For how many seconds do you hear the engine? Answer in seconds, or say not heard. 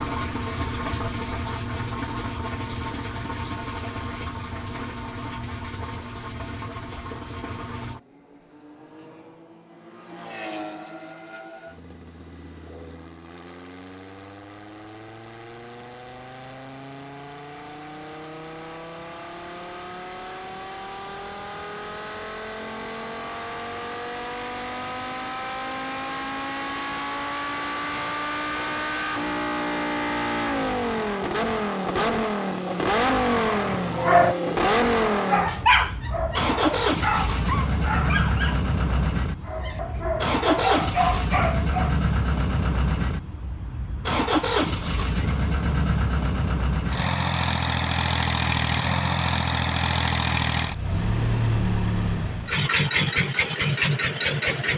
55 s.